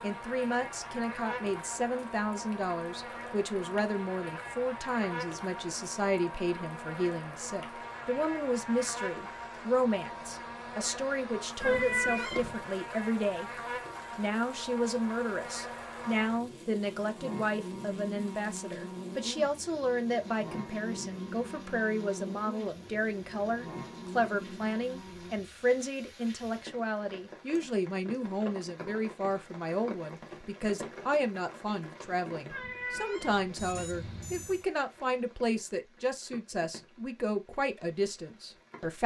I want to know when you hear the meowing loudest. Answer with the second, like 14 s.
12 s.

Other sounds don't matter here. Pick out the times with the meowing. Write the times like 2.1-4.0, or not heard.
11.6-12.7, 32.5-33.8.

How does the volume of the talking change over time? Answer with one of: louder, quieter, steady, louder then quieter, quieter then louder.
steady.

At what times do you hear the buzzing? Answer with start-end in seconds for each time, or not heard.
0.0-25.4.